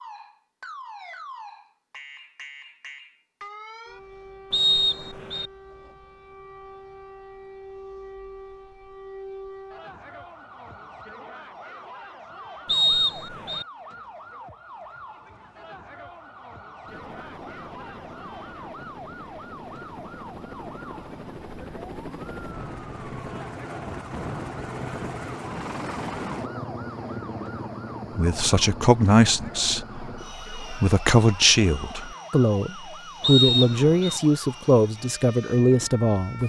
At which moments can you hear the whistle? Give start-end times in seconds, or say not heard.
4.5-5.5, 12.7-13.7, 33.2-34.2.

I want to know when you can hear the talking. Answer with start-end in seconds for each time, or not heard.
28.1-36.4.